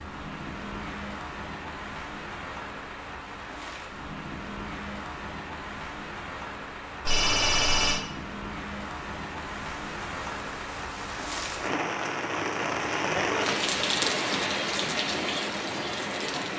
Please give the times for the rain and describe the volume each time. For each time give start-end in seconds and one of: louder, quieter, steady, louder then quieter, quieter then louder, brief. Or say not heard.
0.0-16.5 louder.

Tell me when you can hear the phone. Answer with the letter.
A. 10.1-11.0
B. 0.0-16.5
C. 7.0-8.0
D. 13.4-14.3
C.